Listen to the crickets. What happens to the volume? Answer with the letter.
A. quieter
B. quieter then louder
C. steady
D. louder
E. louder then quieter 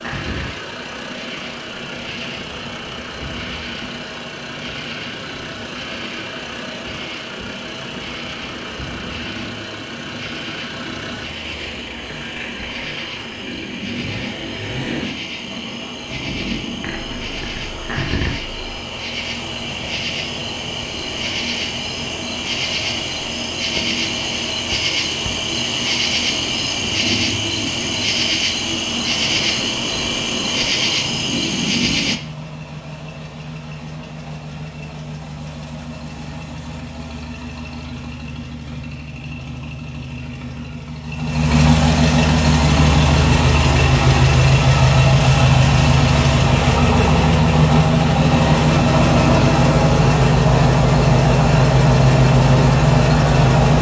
D.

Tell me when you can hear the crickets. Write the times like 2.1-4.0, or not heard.
0.0-32.2.